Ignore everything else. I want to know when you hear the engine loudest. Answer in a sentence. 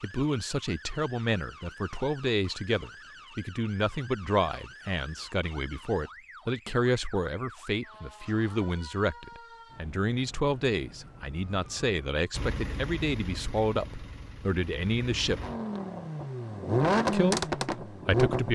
The loudest moment of the engine is at 17 seconds.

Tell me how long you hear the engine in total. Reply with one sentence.
You can hear the engine for 6 seconds altogether.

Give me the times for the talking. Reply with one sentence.
The talking can be heard from 0.0 to 15.4 s and from 17.1 to 18.5 s.